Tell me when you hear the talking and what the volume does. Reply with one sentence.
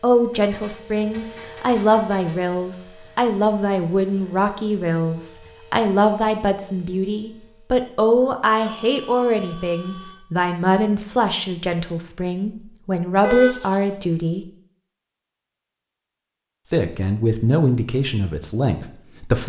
You can hear the talking from 0.0 to 14.4 s, at a steady volume; and briefly from 16.7 to 19.4 s.